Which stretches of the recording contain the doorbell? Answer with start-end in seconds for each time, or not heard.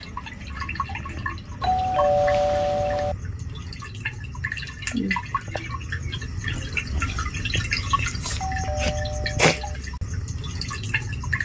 1.6-3.1, 8.2-9.8.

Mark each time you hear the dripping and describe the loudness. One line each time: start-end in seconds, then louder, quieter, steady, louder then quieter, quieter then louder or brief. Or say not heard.
0.0-11.4 louder.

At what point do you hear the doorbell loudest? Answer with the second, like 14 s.
2 s.